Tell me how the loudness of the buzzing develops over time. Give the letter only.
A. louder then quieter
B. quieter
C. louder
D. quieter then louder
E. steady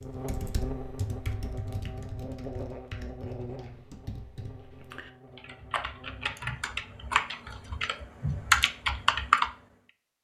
B.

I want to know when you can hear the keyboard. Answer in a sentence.
You can hear the keyboard from 0.0 to 9.5 s.